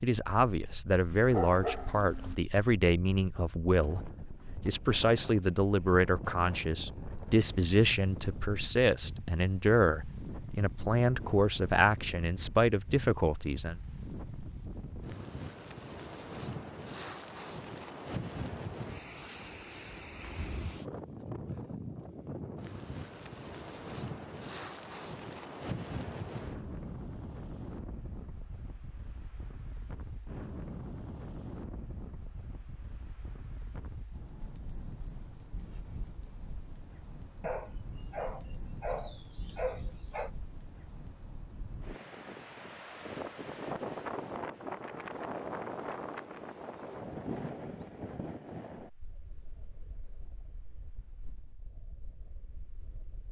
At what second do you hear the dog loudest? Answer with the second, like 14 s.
2 s.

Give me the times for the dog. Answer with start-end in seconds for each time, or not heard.
1.3-2.4, 37.4-40.3.